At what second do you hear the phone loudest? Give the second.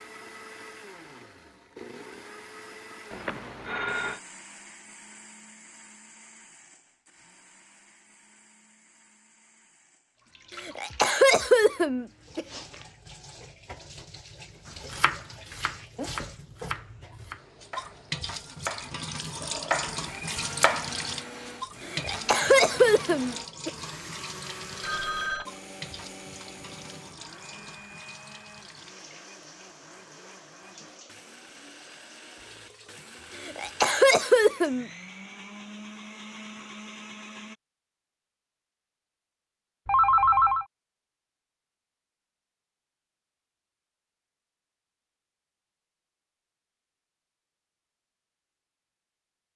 40 s.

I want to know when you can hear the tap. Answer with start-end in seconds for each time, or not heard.
10.2-34.0.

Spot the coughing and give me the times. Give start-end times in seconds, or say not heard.
10.6-12.4, 21.9-23.7, 33.4-34.9.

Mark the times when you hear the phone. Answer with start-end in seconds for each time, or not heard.
3.1-4.2, 24.8-25.4, 39.9-40.6.